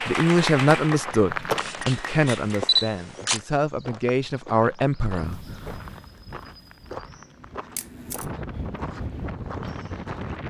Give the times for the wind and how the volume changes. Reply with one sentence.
The wind can be heard from 5.2 to 10.4 s, getting quieter then louder.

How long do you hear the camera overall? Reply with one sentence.
The camera can be heard for 2 seconds in total.